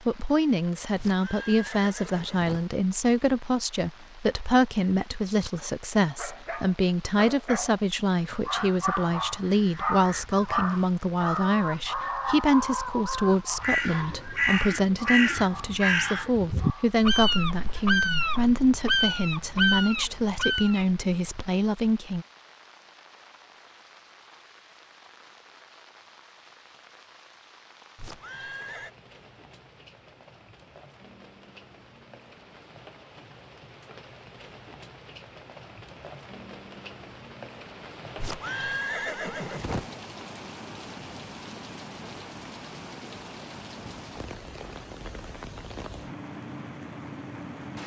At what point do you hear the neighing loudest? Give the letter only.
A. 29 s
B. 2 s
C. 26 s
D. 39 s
D.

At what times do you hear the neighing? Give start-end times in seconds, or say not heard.
0.9-2.6, 27.9-28.9, 38.1-39.9.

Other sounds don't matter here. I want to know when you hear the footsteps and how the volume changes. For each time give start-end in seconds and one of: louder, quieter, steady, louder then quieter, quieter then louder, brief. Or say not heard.
not heard.